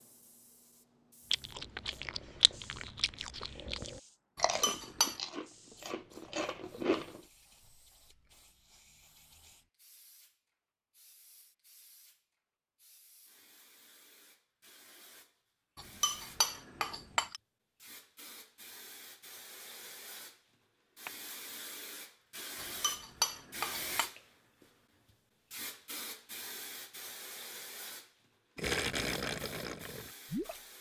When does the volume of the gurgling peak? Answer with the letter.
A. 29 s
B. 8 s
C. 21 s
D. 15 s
A.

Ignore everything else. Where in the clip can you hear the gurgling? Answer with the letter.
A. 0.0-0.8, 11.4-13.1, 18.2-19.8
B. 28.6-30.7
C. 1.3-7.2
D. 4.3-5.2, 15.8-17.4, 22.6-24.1
B.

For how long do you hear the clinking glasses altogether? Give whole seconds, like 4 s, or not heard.
4 s.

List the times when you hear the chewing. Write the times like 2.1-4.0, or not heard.
1.3-7.2.